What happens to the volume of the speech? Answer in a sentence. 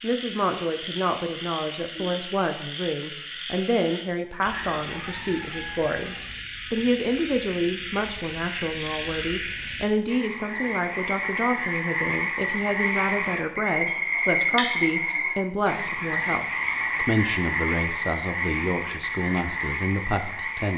The loudness of the speech stays about the same.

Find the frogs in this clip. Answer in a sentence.
The frogs can be heard from 0.0 to 20.7 s.